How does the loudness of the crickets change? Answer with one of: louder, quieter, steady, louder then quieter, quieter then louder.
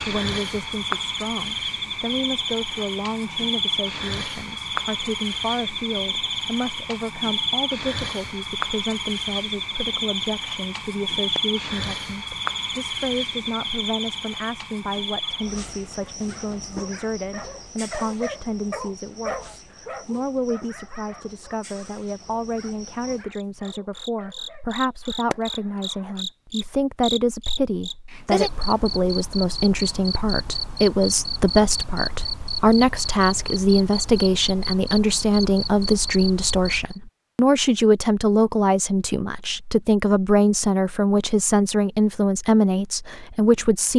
quieter then louder.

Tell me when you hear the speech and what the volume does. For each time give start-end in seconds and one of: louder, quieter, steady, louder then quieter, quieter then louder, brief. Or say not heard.
0.0-43.9 louder.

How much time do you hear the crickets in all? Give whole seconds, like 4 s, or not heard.
37 s.